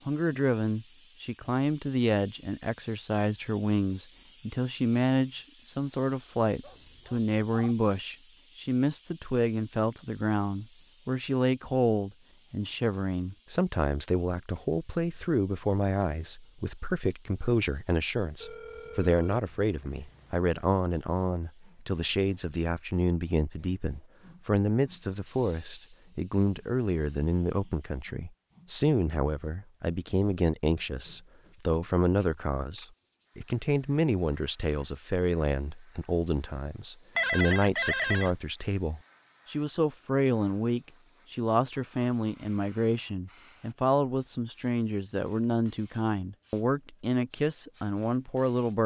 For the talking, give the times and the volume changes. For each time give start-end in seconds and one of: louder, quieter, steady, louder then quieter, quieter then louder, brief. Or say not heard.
0.1-48.8 steady.